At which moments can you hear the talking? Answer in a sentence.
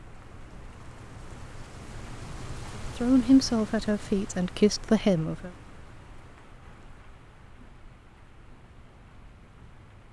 You can hear the talking from 3.0 to 5.5 s.